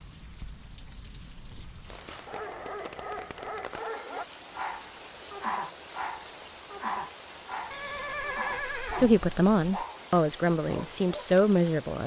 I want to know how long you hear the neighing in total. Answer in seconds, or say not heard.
2 s.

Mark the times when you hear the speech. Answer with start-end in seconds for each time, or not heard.
8.8-12.0.